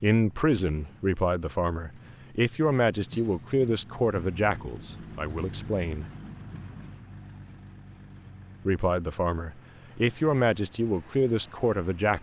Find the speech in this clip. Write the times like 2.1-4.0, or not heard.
0.0-6.0, 8.7-12.1.